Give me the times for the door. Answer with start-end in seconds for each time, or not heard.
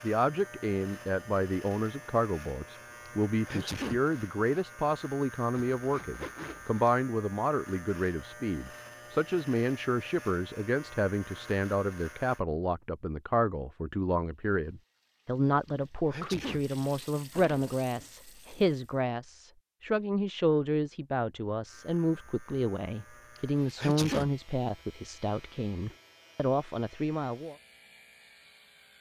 not heard.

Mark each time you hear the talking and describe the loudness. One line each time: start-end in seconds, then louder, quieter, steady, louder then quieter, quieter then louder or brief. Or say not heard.
0.0-27.6 steady.